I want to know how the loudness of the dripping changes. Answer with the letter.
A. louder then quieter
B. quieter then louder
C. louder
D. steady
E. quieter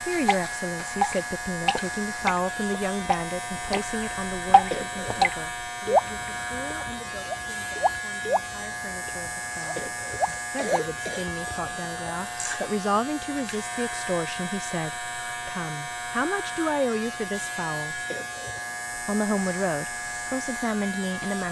E.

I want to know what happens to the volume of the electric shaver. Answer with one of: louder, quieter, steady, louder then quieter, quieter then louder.
steady.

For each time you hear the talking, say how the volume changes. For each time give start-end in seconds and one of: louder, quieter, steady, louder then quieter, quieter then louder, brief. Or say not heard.
0.0-18.0 quieter then louder
18.9-21.4 brief.